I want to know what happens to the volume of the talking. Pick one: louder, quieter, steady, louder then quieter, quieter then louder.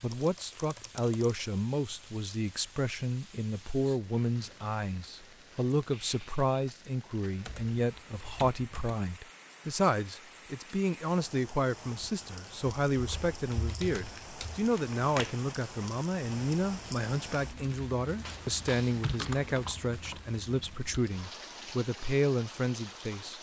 steady.